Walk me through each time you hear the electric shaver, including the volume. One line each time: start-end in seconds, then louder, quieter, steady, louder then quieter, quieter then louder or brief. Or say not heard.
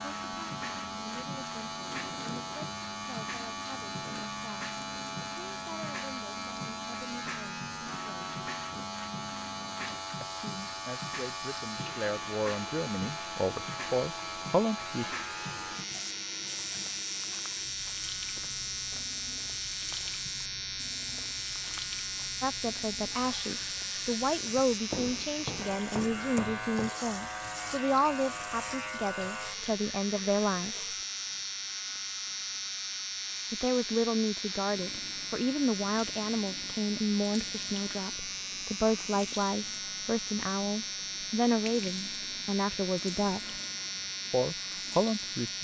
0.0-45.6 steady.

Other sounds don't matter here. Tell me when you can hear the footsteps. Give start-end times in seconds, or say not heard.
15.8-26.9.